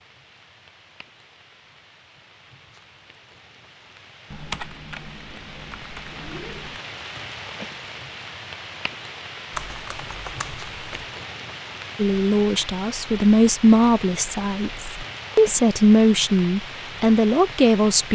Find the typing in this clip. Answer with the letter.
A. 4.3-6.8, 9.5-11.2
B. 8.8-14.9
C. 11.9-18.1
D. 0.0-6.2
A.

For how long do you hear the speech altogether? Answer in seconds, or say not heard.
6 s.